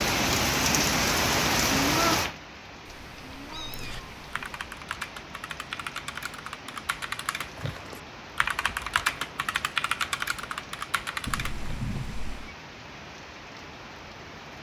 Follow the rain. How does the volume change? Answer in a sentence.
The volume of the rain goes down.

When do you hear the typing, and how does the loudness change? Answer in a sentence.
You can hear the typing from 3.5 to 11.8 s, getting louder.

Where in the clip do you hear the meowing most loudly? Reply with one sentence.
The volume of the meowing peaks at 12 seconds.